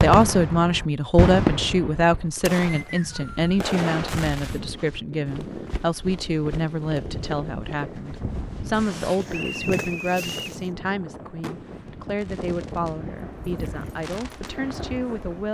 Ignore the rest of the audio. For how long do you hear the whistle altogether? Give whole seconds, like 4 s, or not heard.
2 s.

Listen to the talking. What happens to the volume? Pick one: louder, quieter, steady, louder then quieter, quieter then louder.
quieter.